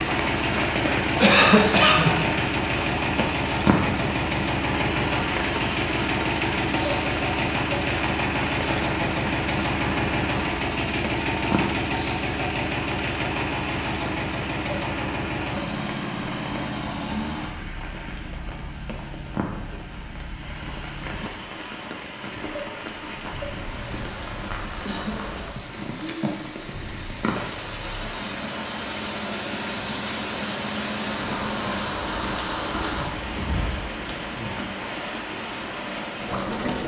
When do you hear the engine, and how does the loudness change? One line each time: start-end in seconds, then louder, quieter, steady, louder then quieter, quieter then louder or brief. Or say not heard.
0.0-34.7 quieter then louder.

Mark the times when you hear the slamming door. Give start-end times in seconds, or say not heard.
not heard.